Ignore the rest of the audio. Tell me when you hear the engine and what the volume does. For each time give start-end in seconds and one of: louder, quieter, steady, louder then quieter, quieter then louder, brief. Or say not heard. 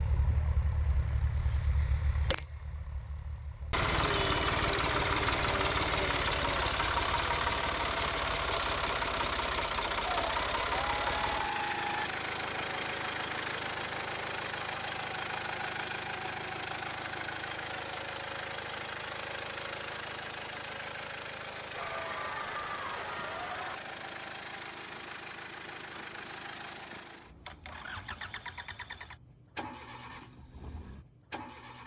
0.0-31.8 quieter.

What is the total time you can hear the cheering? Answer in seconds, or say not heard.
4 s.